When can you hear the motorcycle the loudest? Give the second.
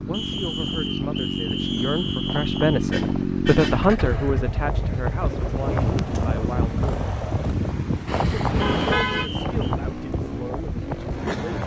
3 s.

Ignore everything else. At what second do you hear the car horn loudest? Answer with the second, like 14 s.
9 s.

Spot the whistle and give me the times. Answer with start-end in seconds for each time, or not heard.
0.1-2.9, 8.6-9.7.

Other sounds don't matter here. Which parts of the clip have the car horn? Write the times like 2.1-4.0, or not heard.
2.9-3.9, 8.1-9.3.